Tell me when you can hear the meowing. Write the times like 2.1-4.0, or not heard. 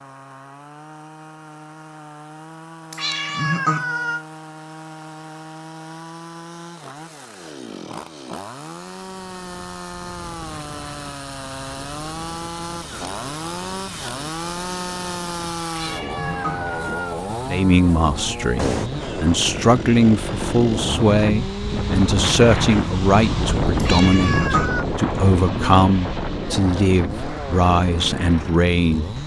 2.9-4.2, 15.7-17.1, 23.8-24.9.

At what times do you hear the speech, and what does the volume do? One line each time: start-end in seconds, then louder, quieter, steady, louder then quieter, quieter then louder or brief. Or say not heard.
17.4-29.1 steady.